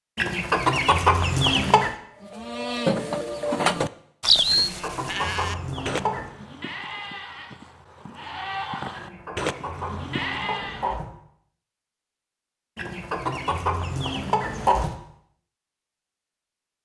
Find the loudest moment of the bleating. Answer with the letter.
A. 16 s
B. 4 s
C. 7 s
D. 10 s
B.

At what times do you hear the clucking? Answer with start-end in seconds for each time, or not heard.
0.1-1.9, 4.5-6.3, 8.9-11.1, 12.8-14.9.